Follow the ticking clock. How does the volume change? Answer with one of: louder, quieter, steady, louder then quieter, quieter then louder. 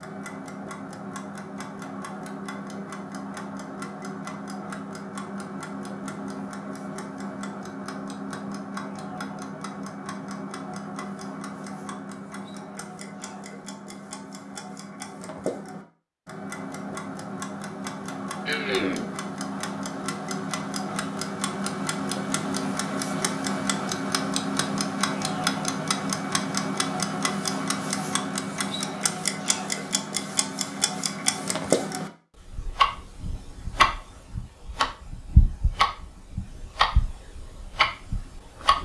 louder.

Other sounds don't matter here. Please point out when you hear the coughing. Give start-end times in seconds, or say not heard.
18.4-19.1.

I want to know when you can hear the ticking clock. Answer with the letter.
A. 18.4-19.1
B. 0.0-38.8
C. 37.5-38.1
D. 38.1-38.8
B.